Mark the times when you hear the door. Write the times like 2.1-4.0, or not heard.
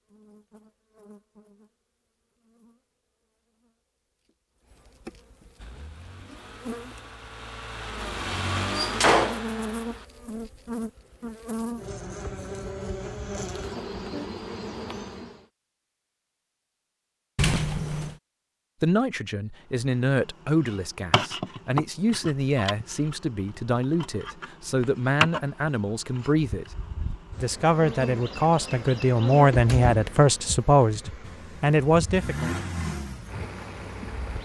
8.8-9.4, 17.4-18.1, 29.4-30.1.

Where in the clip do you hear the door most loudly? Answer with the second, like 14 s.
9 s.